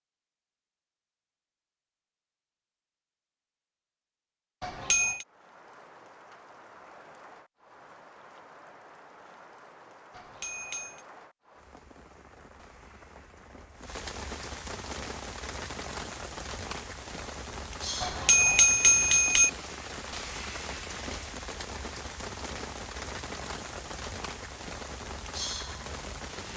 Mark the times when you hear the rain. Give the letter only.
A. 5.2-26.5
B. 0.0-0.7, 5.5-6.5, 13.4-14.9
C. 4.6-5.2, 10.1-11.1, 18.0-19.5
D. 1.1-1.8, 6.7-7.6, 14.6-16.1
A.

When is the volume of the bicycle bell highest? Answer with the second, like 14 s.
19 s.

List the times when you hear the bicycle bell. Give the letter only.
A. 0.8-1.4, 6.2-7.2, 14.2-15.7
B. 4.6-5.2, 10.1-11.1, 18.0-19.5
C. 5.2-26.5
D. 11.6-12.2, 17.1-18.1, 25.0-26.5
B.